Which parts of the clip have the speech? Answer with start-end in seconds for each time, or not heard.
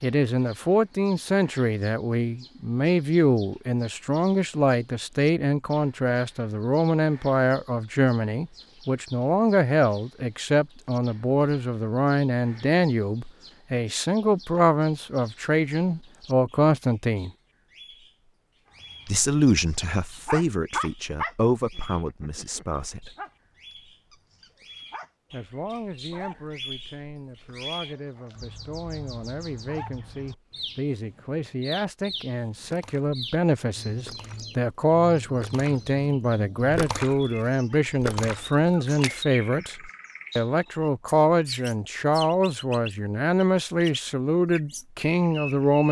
0.0-17.3, 19.1-23.1, 25.3-45.8.